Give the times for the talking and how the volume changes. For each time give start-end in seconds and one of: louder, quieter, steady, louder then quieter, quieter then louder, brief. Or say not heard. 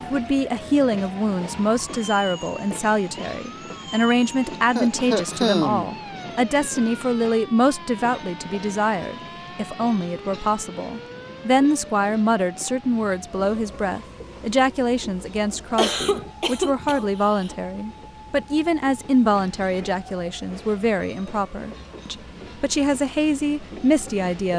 0.0-24.5 steady.